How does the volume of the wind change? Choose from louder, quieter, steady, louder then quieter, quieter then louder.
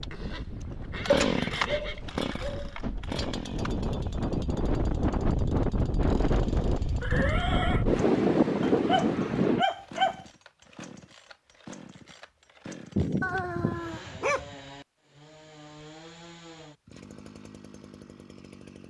louder.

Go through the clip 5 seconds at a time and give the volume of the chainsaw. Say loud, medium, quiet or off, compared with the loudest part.
loud, quiet, quiet, quiet.